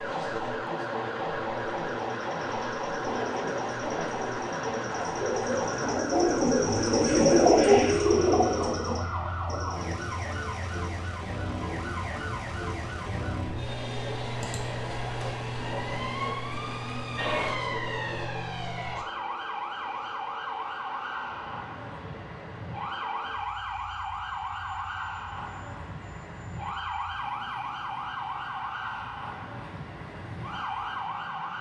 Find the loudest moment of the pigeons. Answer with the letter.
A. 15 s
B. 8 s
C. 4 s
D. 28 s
B.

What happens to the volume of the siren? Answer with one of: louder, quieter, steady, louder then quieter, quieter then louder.
steady.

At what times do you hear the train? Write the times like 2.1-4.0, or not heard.
0.0-31.5.